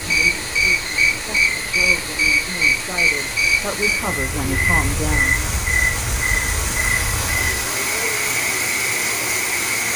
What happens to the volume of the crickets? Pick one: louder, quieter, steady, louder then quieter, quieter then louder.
quieter.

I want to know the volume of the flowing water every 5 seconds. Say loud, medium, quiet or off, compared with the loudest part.
medium, loud.